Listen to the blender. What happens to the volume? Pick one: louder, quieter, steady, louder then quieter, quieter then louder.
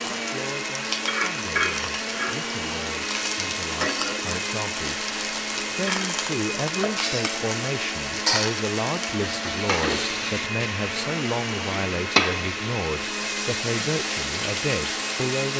steady.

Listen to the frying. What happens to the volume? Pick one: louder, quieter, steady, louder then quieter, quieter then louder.
steady.